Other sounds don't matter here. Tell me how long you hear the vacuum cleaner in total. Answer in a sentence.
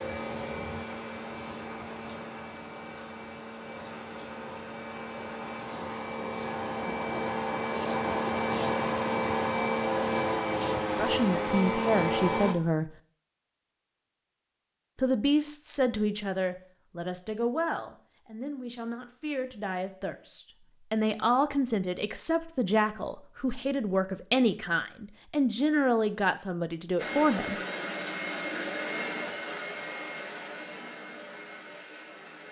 You can hear the vacuum cleaner for 18 seconds altogether.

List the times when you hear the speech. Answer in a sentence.
The speech can be heard from 10.9 to 12.9 s and from 14.9 to 27.6 s.